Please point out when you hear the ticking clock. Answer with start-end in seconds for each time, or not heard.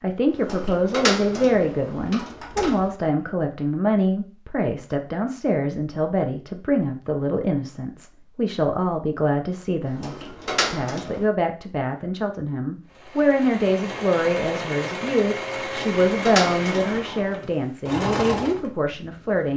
not heard.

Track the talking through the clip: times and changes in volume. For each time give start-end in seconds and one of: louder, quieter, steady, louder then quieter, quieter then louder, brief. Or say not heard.
0.0-19.5 steady.